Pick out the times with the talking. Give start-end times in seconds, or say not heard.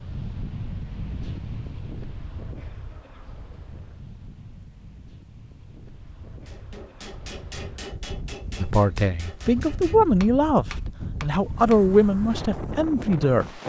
8.6-13.6.